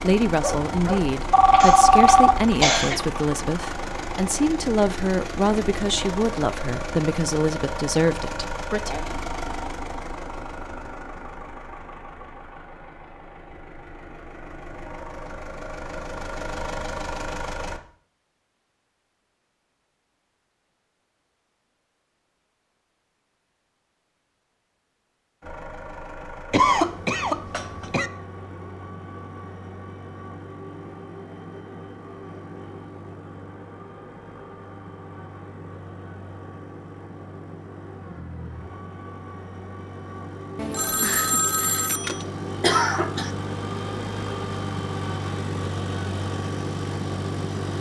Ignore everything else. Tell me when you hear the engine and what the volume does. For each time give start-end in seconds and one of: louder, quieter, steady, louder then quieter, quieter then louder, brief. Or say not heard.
0.0-17.8 quieter then louder
25.4-47.7 louder.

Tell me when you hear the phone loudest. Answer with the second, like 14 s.
2 s.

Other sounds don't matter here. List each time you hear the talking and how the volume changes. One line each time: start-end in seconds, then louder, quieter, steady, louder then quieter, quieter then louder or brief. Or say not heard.
0.0-8.9 steady.